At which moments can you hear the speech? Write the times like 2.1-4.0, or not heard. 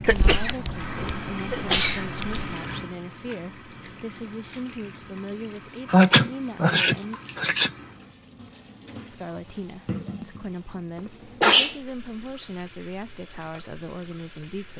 0.0-7.2, 9.1-14.7.